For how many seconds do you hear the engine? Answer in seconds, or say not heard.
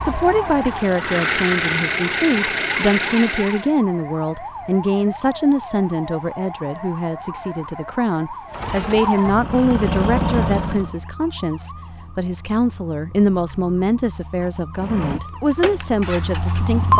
8 s.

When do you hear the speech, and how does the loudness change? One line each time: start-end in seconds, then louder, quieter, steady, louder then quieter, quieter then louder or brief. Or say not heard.
0.0-16.9 steady.